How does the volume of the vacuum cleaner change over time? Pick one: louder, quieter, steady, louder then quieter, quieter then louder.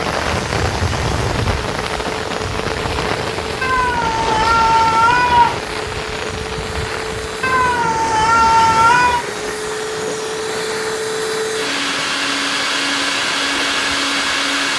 louder.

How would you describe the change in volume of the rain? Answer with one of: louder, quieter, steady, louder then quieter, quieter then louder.
quieter.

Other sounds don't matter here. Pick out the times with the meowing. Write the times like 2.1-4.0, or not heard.
3.6-5.6, 7.4-9.2.